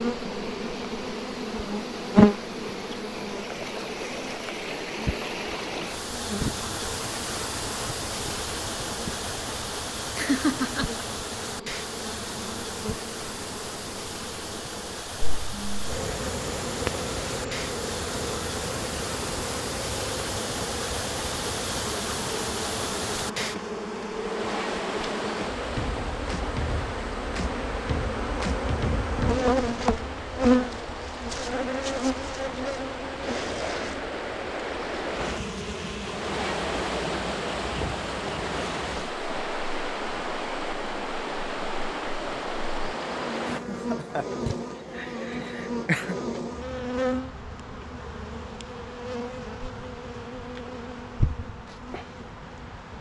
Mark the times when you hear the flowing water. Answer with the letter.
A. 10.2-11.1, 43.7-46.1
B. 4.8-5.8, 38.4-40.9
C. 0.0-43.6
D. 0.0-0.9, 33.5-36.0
C.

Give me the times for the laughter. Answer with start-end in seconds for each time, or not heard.
10.2-11.1, 43.7-46.1.